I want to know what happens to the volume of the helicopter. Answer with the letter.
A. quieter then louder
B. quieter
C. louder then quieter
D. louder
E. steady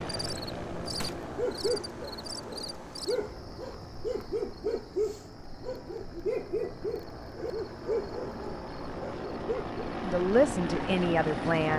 A.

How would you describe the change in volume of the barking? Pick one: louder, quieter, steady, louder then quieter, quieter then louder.
steady.